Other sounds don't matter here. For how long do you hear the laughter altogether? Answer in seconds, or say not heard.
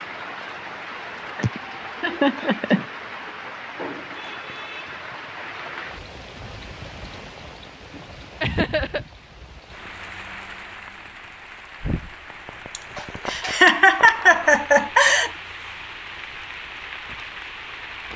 5 s.